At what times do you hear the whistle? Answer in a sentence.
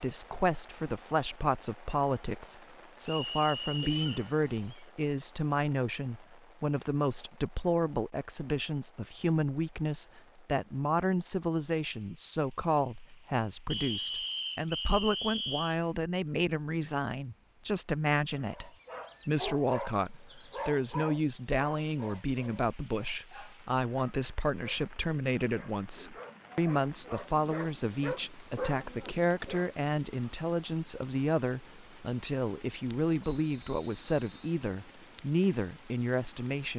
The whistle can be heard from 3.0 to 4.2 s, from 13.7 to 15.8 s and from 33.2 to 34.4 s.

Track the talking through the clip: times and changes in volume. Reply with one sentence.
You can hear the talking from 0.0 to 36.7 s, at a steady volume.